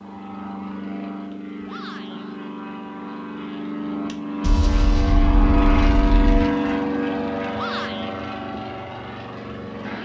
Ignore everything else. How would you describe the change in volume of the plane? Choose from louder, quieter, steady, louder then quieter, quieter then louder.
louder then quieter.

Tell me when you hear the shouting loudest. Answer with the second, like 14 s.
8 s.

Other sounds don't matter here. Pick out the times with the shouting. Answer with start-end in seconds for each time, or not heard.
1.6-2.2, 7.5-8.1.